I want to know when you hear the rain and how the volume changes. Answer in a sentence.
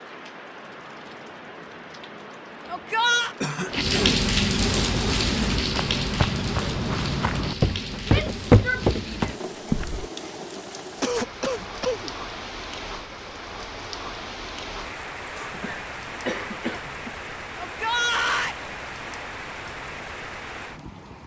The rain can be heard from 0.0 to 21.2 s, getting quieter.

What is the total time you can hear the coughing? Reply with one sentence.
The coughing can be heard for 4 seconds in total.